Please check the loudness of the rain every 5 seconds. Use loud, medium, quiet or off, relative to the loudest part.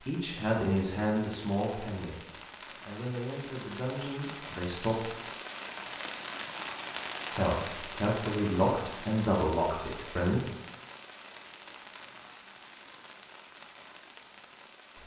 medium, loud, medium.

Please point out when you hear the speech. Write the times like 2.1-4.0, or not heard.
0.1-5.1, 7.3-10.4.